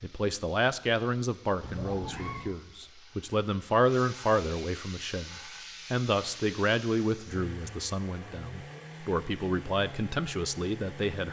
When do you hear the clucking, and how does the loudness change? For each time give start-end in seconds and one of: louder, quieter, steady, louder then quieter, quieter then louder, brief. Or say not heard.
not heard.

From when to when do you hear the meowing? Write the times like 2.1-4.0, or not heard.
1.6-2.5.